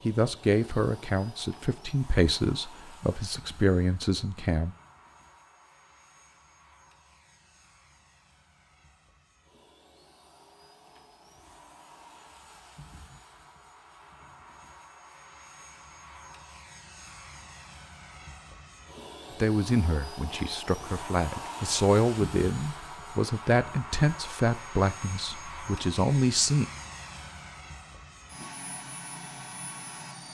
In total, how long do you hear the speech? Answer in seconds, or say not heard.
12 s.